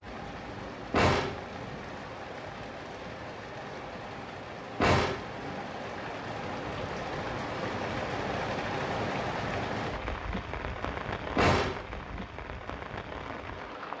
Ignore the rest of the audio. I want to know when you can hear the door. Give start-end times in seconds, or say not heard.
0.9-1.8, 4.8-5.6, 11.3-12.2.